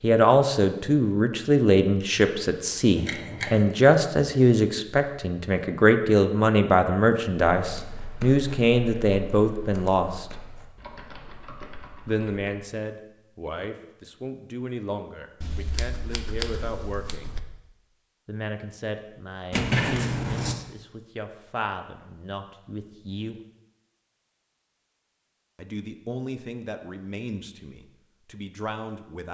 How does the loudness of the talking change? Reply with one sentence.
The volume of the talking goes down.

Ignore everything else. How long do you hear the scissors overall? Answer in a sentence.
You can hear the scissors for 4 seconds altogether.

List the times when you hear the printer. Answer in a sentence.
The printer can't be heard in this clip.